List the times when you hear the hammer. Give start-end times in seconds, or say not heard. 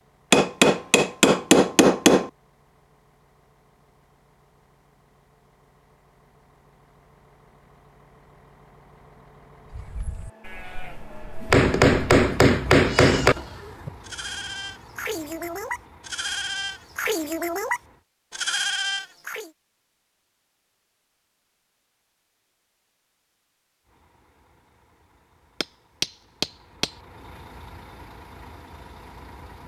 0.3-2.3, 11.5-13.4, 25.6-26.9.